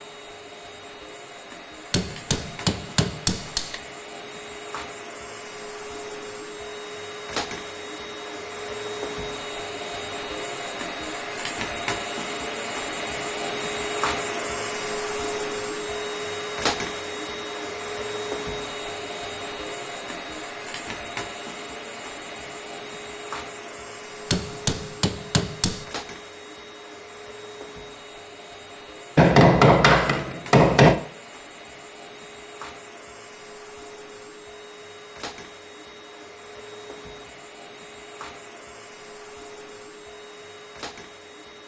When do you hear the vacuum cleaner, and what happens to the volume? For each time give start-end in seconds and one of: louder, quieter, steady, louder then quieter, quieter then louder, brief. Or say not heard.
0.0-41.6 louder then quieter.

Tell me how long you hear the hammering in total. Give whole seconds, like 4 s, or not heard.
5 s.